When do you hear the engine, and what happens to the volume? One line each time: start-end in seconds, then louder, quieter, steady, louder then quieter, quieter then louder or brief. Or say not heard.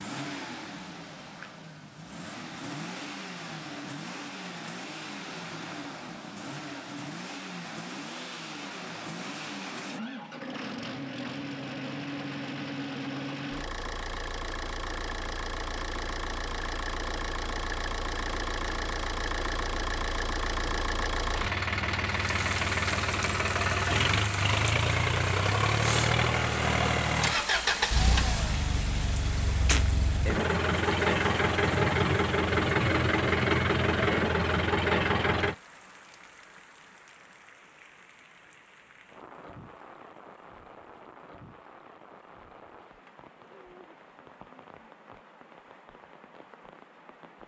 0.0-35.5 louder.